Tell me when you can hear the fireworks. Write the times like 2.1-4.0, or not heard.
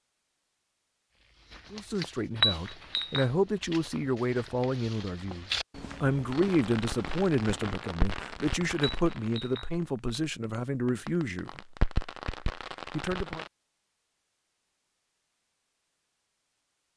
6.3-13.5.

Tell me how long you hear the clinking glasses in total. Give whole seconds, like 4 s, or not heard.
2 s.